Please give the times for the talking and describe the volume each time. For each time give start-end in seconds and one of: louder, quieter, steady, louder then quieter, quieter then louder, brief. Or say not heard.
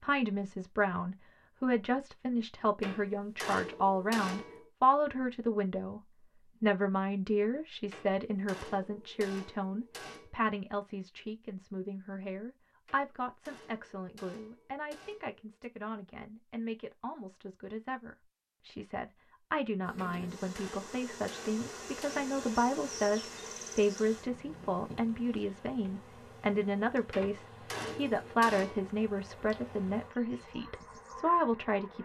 0.0-32.0 quieter then louder.